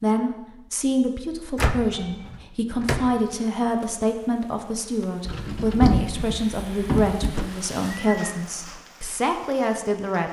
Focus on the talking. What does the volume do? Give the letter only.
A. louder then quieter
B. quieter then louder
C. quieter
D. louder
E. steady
E.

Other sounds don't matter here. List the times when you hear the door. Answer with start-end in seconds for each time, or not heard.
1.6-3.1, 5.2-7.5.